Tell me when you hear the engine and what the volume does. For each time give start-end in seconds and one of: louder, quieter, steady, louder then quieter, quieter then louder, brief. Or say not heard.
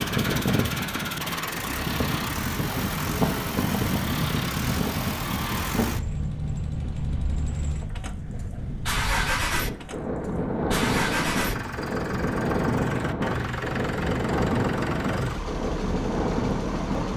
0.0-17.1 steady.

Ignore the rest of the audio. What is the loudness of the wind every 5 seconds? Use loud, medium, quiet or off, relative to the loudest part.
loud, medium, loud, loud.